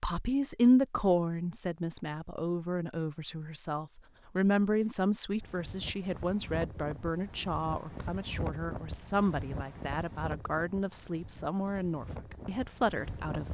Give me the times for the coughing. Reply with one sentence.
The coughing can't be heard in this clip.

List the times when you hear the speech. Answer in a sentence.
The speech can be heard from 0.0 to 13.4 s.